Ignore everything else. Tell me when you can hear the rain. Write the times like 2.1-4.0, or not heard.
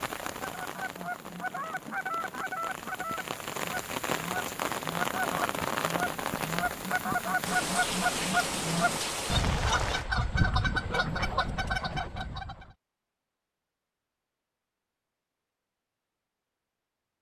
0.0-10.1.